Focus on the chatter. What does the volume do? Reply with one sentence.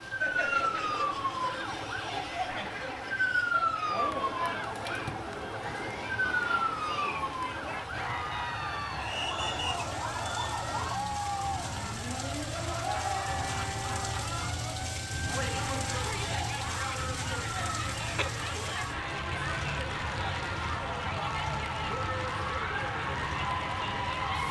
The loudness of the chatter stays about the same.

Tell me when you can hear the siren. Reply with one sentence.
The siren can be heard from 0.0 to 24.4 s.